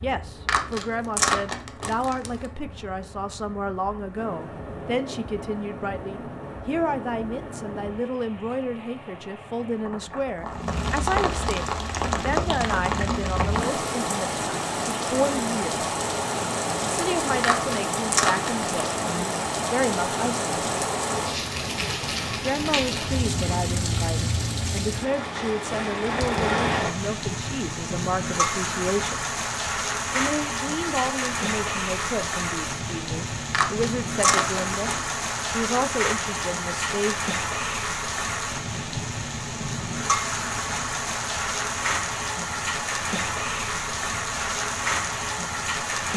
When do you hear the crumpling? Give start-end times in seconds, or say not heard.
0.5-2.5, 17.4-18.6, 33.5-35.1.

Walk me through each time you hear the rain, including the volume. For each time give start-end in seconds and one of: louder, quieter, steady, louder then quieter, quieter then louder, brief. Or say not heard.
0.0-46.1 louder.